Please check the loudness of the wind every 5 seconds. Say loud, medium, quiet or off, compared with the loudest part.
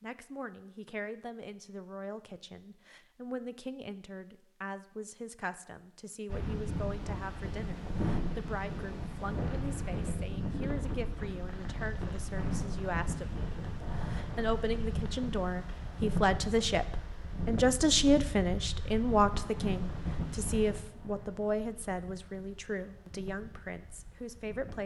off, loud, loud, loud, medium.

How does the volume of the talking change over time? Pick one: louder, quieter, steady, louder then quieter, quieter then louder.
louder then quieter.